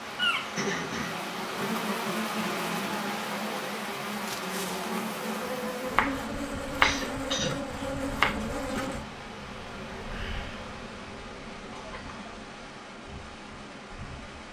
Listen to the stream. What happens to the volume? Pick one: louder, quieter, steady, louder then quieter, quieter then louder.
quieter.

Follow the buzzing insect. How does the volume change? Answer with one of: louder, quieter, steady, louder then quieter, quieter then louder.
quieter.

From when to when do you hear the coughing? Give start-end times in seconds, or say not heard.
0.6-1.6, 6.8-7.5, 11.7-12.3.